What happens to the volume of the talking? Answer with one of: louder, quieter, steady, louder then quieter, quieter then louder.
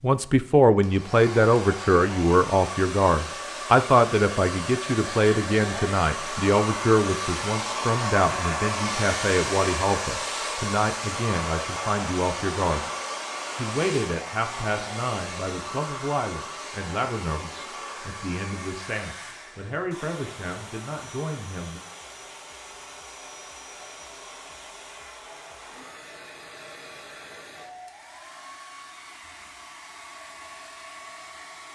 quieter.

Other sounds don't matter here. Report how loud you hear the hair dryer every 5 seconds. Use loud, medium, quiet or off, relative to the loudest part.
medium, loud, loud, medium, quiet, quiet, quiet.